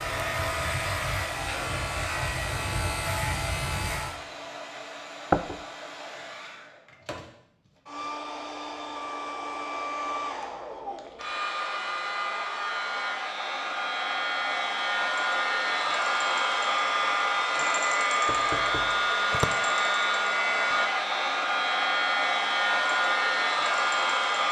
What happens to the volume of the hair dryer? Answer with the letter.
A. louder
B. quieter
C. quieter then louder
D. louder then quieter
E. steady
A.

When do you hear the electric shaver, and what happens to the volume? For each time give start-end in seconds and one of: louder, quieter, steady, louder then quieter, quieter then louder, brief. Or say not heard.
0.0-4.2 steady.